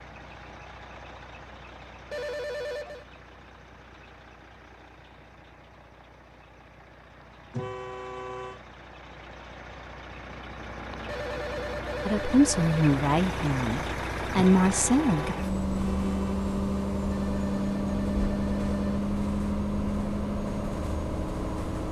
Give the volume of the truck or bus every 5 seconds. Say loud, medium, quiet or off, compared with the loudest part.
quiet, quiet, medium, loud, loud.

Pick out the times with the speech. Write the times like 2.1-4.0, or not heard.
12.1-15.3.